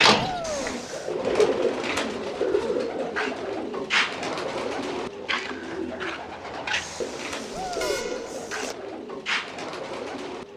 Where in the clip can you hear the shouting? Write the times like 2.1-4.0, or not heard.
0.1-0.8, 7.5-8.1.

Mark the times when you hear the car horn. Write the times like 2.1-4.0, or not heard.
0.4-1.1, 6.7-8.8.